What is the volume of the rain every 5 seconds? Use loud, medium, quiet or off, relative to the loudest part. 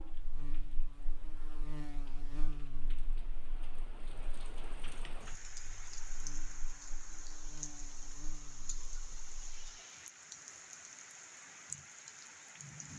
medium, loud, loud.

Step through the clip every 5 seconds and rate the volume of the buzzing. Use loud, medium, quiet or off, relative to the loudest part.
loud, medium, off.